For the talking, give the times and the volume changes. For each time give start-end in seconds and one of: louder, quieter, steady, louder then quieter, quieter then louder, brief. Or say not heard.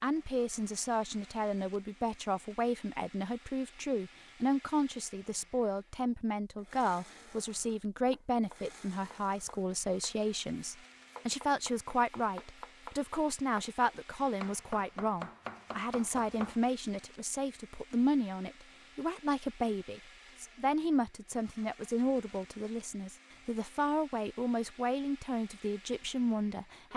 0.0-26.9 steady.